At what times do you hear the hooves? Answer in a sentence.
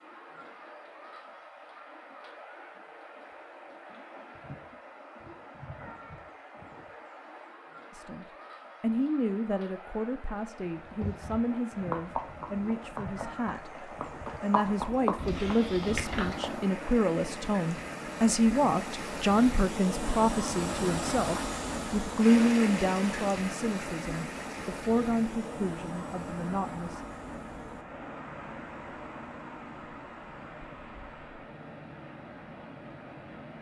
The hooves can be heard from 10.8 to 16.6 s.